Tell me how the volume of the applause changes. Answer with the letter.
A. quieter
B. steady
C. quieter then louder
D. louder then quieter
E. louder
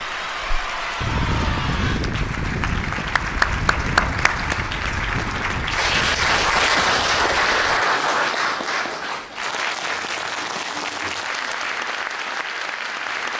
D.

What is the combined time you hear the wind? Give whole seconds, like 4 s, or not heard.
8 s.